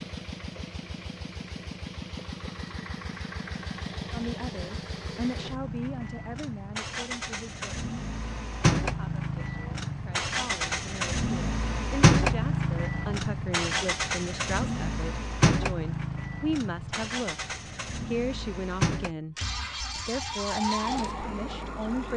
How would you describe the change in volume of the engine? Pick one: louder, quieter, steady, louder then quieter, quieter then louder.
louder then quieter.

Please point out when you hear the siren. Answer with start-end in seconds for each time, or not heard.
19.4-22.1.